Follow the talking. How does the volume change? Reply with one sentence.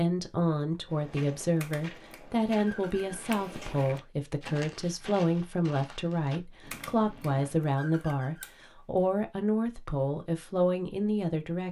The loudness of the talking stays about the same.